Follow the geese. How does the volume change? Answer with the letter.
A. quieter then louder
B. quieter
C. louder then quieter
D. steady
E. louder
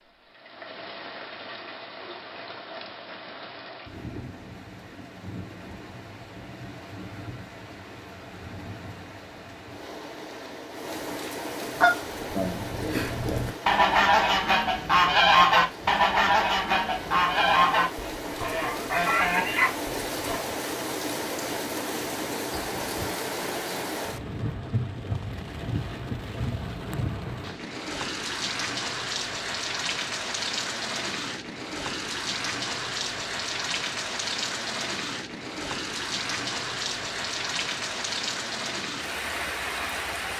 C.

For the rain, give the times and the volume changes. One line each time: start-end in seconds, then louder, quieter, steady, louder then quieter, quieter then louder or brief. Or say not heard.
0.0-40.3 louder.